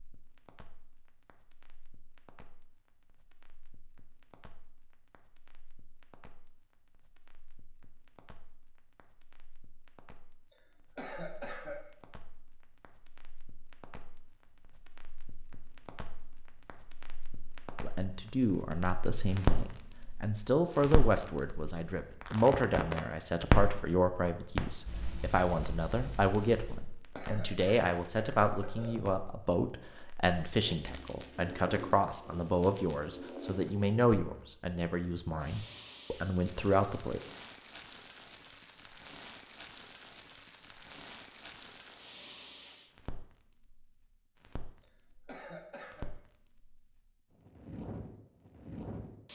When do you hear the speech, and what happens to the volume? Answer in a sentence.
You can hear the speech from 17.8 to 37.2 s, at a steady volume.